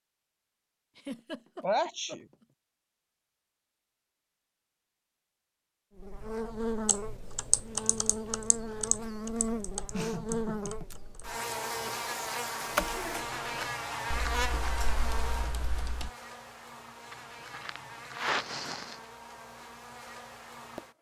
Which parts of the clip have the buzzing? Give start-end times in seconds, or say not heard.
6.0-20.9.